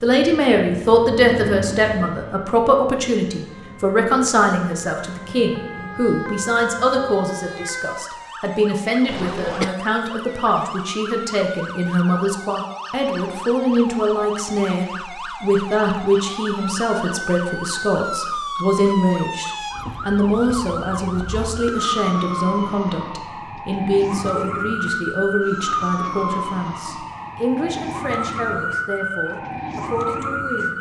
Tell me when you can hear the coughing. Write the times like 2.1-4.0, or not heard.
9.1-9.8.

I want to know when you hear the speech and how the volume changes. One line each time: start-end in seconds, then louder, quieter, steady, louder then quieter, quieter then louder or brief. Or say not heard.
0.0-30.7 quieter.